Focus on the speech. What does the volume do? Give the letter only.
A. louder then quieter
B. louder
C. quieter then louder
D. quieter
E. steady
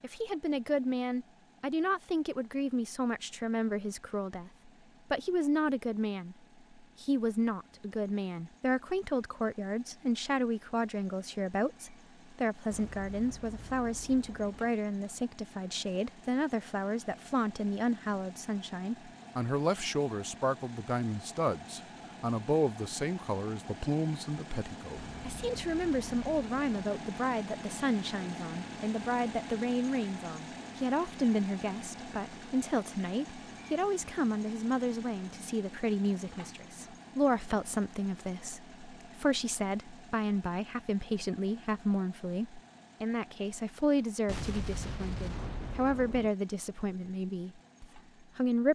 E.